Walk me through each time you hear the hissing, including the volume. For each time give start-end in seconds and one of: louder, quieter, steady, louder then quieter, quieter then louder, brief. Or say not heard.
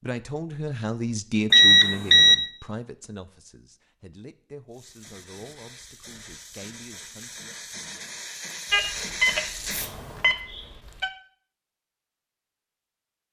4.7-10.3 louder.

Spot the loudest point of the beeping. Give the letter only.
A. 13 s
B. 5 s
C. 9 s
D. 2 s
D.